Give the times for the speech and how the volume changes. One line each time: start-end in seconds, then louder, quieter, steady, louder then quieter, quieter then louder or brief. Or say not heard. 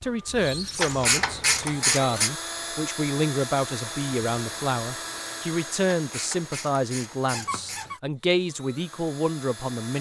0.0-9.9 steady.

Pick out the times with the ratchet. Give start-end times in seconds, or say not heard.
0.8-2.3, 5.9-7.8.